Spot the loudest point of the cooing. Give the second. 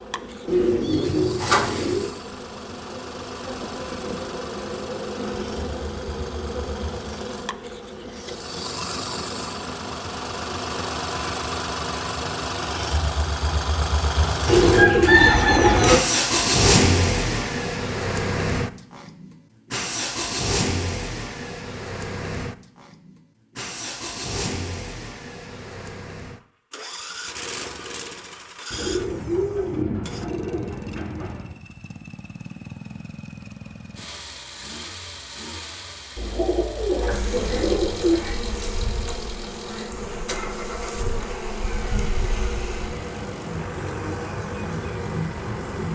15 s.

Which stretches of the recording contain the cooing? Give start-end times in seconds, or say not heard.
0.5-2.1, 14.4-16.0, 28.7-31.6, 36.1-38.2.